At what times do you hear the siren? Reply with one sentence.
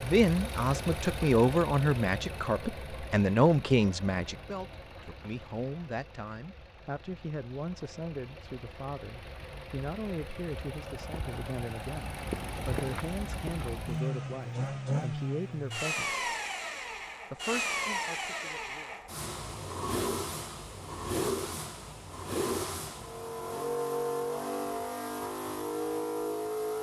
The siren can't be heard in this clip.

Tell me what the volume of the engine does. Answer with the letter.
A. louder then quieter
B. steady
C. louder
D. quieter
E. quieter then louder
E.